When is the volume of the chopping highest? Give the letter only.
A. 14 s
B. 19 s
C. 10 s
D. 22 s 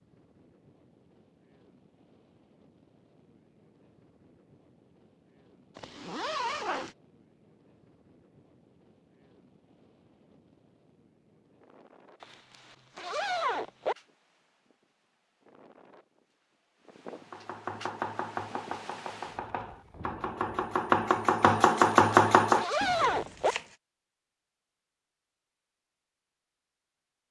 D.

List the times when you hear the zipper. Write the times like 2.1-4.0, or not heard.
5.8-7.0, 12.2-13.9, 21.9-23.6.